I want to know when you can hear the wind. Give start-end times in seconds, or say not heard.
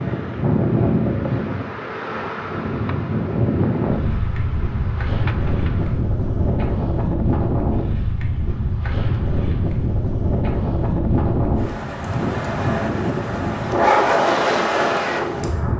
0.0-15.7.